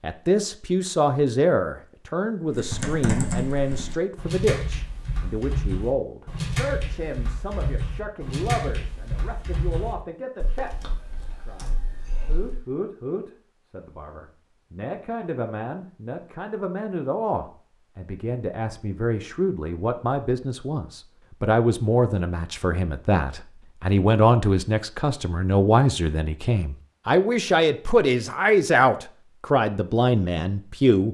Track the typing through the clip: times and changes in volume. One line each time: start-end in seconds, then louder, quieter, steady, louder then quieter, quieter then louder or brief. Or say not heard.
2.5-12.7 quieter.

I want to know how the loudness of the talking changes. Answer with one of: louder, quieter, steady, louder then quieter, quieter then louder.
quieter then louder.